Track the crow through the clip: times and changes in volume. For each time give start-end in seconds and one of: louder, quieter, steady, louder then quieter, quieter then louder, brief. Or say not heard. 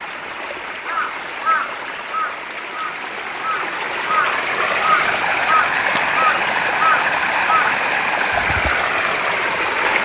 0.7-8.8 quieter then louder.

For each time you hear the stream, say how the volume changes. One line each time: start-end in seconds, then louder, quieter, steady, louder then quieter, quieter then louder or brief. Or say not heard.
0.0-9.9 louder.